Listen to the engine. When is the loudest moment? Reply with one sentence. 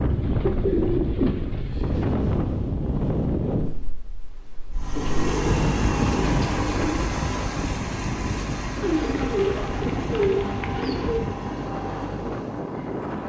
The loudest moment of the engine is at 6 seconds.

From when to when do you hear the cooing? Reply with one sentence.
The cooing can be heard from 0.1 to 1.8 s, from 4.9 to 7.0 s and from 8.8 to 11.2 s.